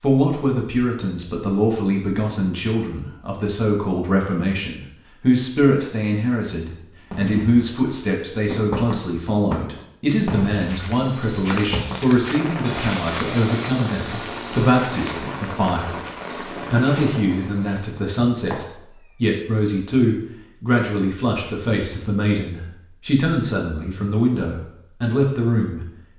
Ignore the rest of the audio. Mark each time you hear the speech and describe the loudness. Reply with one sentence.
The speech can be heard from 0.0 to 25.8 s, at a steady volume.